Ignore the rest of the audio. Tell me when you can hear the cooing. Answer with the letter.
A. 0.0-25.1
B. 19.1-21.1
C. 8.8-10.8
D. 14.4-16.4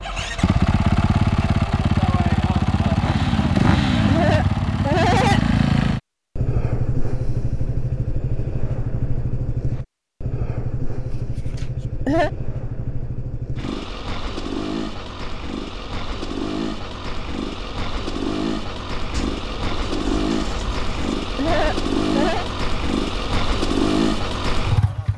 B.